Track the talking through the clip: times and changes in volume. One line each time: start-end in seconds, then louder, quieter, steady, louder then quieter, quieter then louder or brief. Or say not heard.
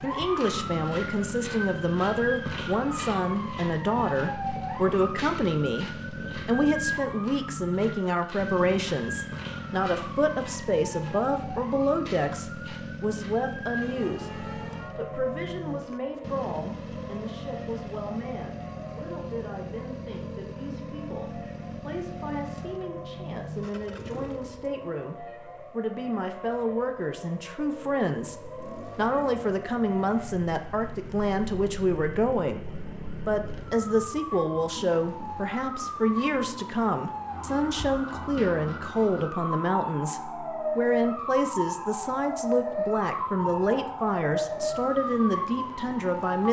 0.0-46.4 quieter then louder.